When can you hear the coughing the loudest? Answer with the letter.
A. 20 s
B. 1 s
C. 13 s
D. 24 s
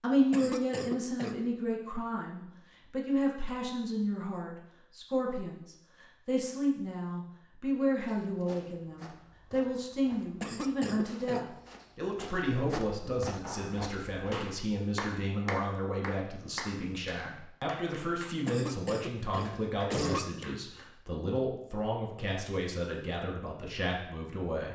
A.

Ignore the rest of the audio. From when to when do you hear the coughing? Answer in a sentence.
The coughing can be heard from 0.3 to 1.4 s, from 10.4 to 11.4 s and from 18.4 to 20.4 s.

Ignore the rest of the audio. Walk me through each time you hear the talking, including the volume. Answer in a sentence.
The talking can be heard from 0.0 to 24.7 s, at a steady volume.